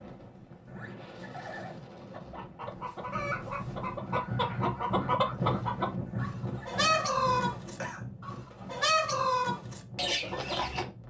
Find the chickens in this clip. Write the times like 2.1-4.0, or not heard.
2.1-10.8.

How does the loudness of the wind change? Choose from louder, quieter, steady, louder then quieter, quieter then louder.
louder then quieter.